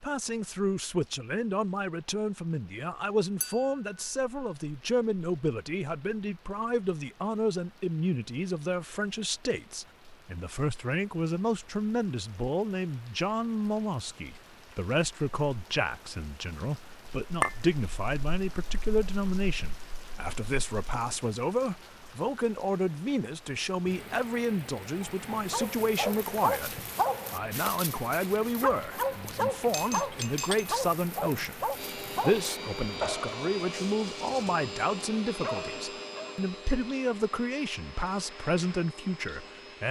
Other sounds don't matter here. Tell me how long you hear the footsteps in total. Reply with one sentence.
The footsteps can't be heard in this clip.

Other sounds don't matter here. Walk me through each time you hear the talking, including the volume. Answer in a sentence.
You can hear the talking from 0.0 to 39.8 s, at a steady volume.